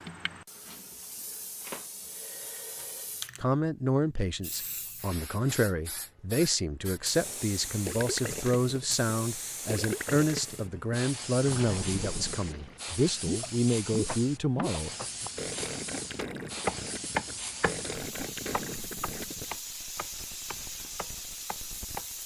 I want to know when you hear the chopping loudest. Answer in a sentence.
The loudest moment of the chopping is at 17 seconds.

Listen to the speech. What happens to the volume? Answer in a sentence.
The loudness of the speech stays about the same.